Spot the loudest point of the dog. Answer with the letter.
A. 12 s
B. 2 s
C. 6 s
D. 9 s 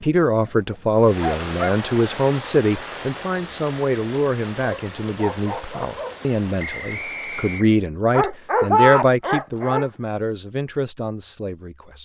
D.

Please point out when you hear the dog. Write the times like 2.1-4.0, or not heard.
0.7-1.8, 4.6-6.2, 8.1-9.9.